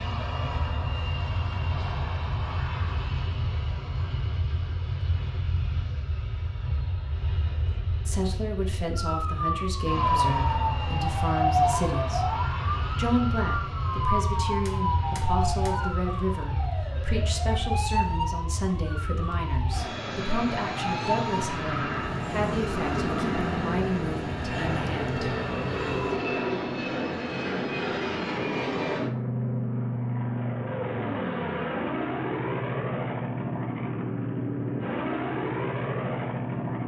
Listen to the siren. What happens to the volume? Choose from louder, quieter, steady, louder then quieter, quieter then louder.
quieter.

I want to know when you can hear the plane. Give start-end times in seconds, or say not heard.
0.0-36.8.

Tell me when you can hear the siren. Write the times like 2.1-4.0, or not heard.
8.9-26.2.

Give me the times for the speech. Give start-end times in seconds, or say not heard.
8.1-12.3, 12.9-25.3.